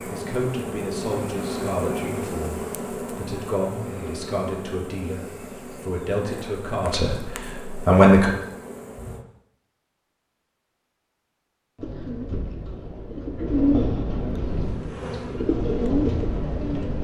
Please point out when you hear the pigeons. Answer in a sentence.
The pigeons can be heard from 11.8 to 16.9 s.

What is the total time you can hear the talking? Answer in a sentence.
The talking can be heard for 8 seconds in total.